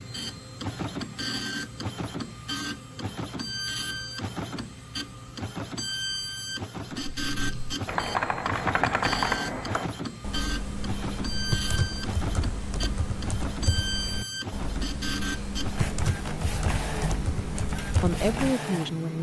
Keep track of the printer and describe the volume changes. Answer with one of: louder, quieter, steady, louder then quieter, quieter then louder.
steady.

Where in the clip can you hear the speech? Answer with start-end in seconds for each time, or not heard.
18.0-19.1.